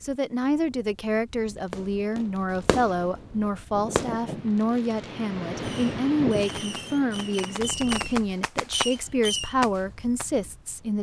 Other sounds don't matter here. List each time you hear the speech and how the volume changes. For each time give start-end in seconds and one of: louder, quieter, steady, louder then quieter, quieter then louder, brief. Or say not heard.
0.0-10.9 steady.